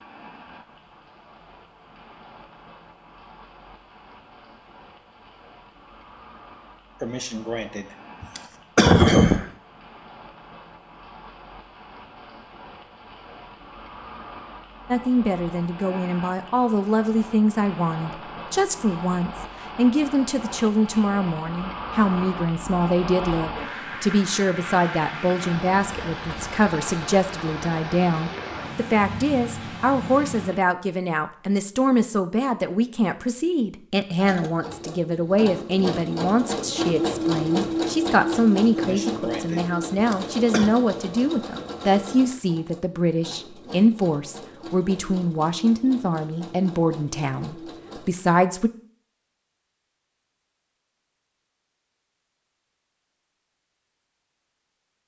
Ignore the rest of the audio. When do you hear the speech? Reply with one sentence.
The speech can be heard from 14.9 to 48.7 s.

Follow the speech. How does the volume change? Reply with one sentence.
The loudness of the speech stays about the same.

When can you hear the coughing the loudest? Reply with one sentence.
The loudest moment of the coughing is at 9 seconds.